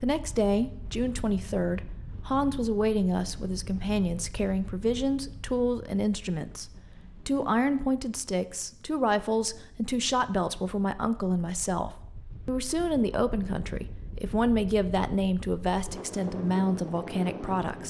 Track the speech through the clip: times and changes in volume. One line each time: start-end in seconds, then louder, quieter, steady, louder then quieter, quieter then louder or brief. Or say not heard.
0.0-17.8 steady.